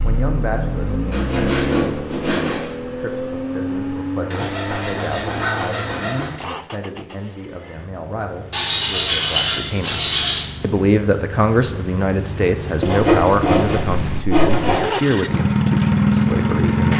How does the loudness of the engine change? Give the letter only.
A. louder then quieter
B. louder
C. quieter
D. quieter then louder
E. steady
D.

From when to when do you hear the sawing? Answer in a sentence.
You can hear the sawing from 1.1 to 2.7 s, from 4.3 to 6.3 s, from 8.5 to 10.4 s and from 12.8 to 14.8 s.